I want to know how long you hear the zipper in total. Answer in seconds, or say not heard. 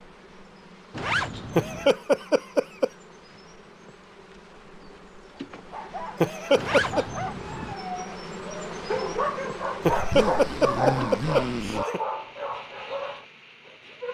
4 s.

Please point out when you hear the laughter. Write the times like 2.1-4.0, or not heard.
1.6-2.9, 6.2-7.0, 9.8-12.0.